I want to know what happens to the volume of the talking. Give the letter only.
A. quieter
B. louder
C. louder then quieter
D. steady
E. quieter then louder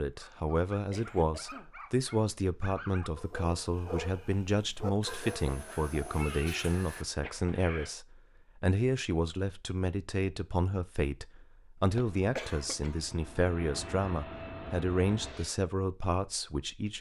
D.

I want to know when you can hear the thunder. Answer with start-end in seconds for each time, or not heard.
not heard.